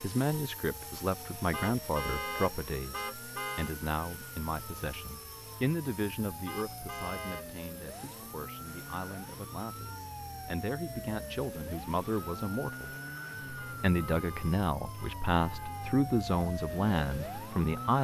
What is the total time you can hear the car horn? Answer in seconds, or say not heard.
6 s.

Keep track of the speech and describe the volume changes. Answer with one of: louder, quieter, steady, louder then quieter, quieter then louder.
quieter then louder.